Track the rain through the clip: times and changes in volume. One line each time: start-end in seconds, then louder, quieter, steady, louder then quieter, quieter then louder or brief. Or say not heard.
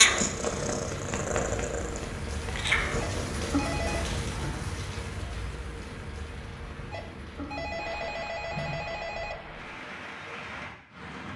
0.0-11.3 louder then quieter.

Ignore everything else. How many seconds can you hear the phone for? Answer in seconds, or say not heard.
4 s.